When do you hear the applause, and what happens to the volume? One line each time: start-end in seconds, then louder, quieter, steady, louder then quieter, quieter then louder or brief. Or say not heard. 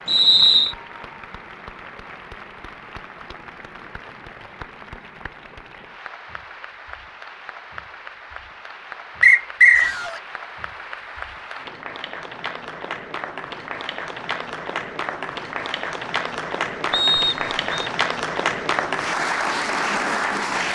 0.0-20.6 louder.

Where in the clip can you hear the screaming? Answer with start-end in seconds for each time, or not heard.
9.8-10.2.